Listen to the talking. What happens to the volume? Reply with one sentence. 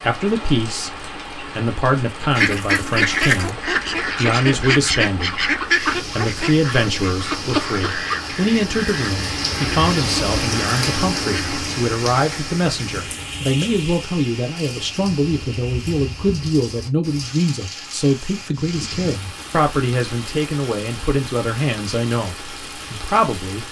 The loudness of the talking stays about the same.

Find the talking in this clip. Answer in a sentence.
The talking can be heard from 0.0 to 23.6 s.